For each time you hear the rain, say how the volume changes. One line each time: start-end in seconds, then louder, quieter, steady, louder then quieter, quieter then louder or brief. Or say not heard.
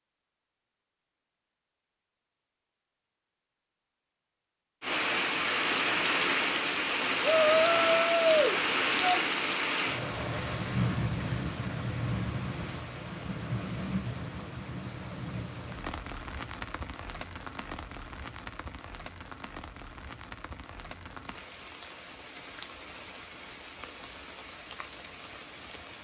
4.8-25.9 quieter.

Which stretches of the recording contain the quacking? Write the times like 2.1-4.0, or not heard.
not heard.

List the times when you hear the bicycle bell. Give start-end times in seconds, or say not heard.
not heard.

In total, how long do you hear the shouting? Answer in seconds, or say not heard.
2 s.